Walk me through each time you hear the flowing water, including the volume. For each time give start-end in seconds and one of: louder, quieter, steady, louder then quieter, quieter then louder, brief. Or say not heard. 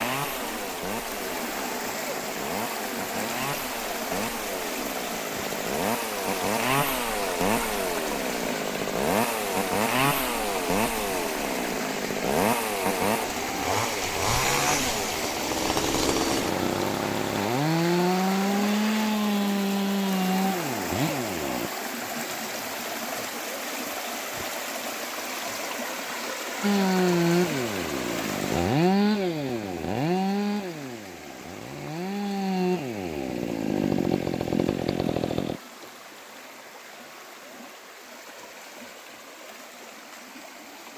0.0-40.9 quieter.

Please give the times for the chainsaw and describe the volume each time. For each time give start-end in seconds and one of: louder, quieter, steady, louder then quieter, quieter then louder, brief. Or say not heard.
0.0-21.7 louder
26.6-35.6 quieter then louder.